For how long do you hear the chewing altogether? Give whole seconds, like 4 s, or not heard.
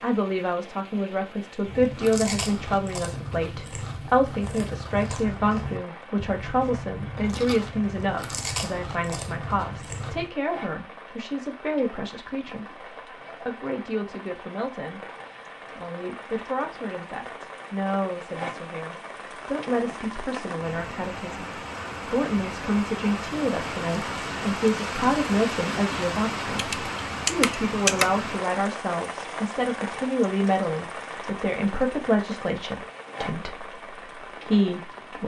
9 s.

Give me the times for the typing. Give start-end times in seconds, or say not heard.
26.6-28.1.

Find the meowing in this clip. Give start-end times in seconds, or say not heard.
not heard.